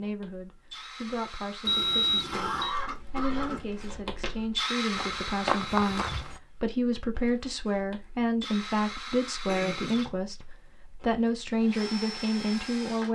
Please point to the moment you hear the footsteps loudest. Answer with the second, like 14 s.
6 s.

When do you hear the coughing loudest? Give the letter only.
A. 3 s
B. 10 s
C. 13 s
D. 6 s
A.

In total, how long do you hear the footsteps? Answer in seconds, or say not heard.
3 s.